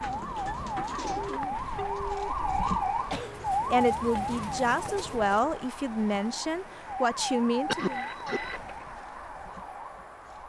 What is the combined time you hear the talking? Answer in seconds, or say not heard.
4 s.